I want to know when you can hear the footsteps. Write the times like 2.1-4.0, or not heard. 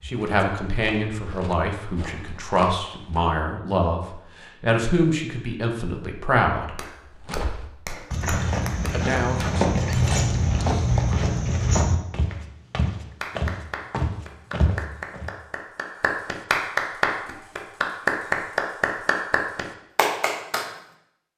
0.0-3.4, 7.2-15.3.